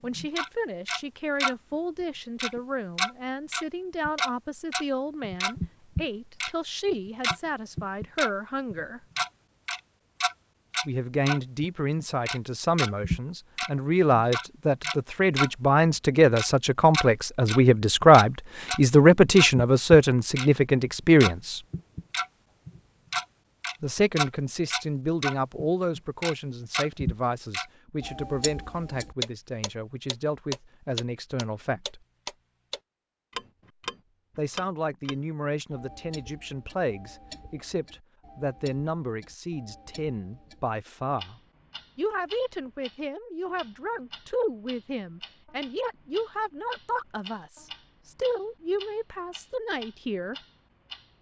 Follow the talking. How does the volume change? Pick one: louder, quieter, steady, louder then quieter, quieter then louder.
louder then quieter.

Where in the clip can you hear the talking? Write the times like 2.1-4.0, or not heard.
0.0-9.0, 10.8-21.6, 23.8-32.0, 34.4-41.4, 42.0-50.4.